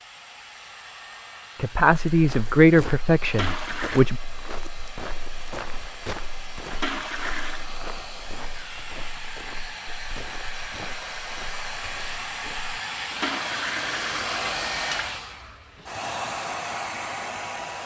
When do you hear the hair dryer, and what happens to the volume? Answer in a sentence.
The hair dryer can be heard from 0.0 to 17.8 s, getting louder.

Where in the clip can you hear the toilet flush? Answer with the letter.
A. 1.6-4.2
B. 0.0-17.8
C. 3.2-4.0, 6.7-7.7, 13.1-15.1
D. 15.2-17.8
C.